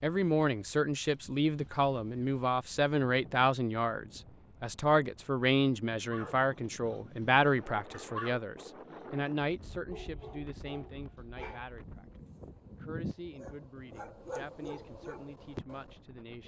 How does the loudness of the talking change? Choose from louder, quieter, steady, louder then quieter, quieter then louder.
quieter.